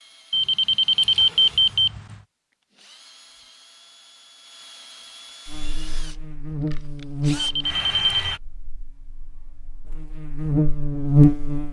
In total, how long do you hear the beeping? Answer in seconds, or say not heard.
3 s.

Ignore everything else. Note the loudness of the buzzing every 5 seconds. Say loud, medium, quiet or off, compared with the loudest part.
off, quiet, loud.